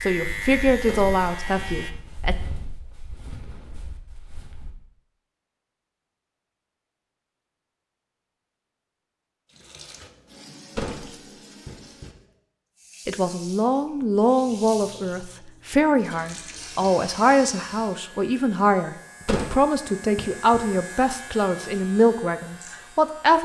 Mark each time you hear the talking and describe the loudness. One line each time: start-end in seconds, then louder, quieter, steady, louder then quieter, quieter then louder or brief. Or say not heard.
0.0-2.4 brief
13.1-23.4 steady.